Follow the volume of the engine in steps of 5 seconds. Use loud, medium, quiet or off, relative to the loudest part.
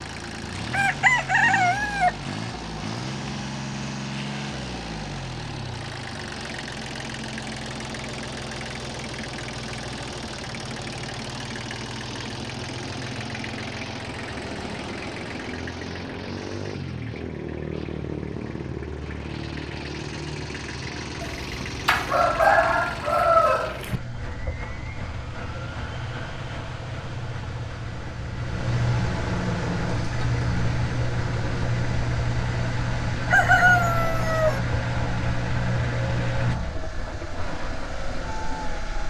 medium, medium, medium, medium, medium, loud, loud, loud.